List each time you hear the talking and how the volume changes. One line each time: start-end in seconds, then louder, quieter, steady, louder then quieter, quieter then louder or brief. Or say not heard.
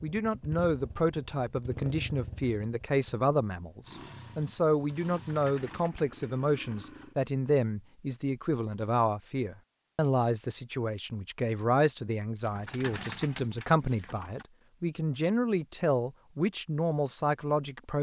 0.0-17.9 steady.